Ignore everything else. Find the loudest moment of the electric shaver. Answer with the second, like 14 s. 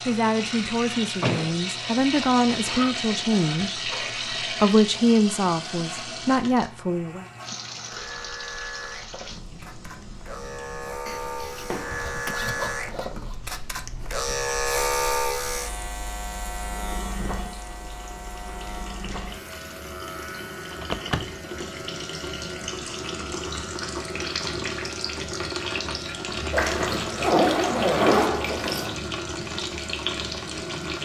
15 s.